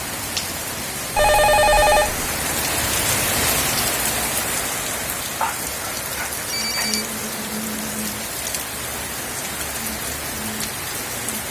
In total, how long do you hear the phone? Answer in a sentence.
The phone can be heard for 2 seconds in total.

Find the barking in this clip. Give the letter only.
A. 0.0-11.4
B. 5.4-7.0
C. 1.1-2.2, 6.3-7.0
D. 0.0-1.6
B.